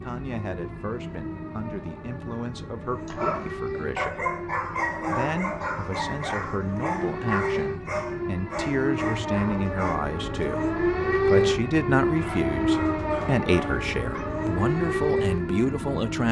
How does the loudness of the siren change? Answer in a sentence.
The volume of the siren goes up.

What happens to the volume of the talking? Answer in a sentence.
The loudness of the talking goes up.